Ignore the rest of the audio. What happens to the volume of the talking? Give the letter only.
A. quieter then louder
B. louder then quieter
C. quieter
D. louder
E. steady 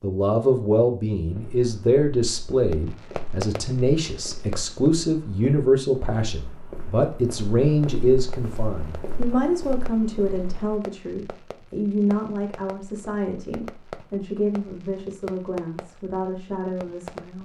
C.